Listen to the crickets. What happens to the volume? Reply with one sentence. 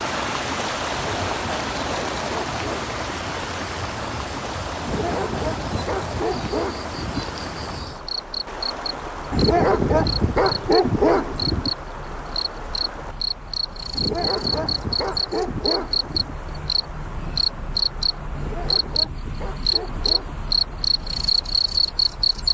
The volume of the crickets goes up.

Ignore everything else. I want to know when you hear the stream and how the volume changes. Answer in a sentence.
You can hear the stream from 0.0 to 22.4 s, getting quieter.